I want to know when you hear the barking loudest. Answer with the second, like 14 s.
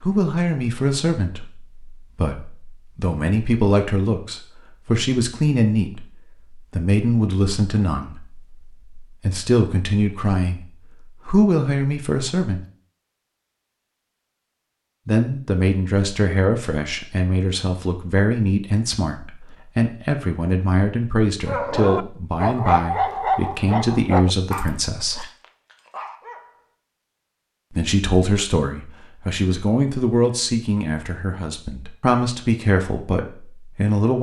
23 s.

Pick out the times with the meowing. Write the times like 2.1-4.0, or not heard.
not heard.